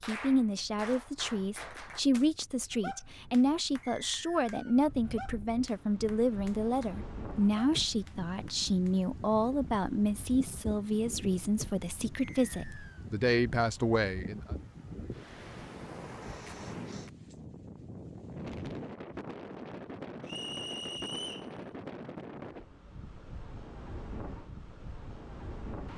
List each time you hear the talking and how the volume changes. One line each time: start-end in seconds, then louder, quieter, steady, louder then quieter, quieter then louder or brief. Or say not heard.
0.1-14.6 steady.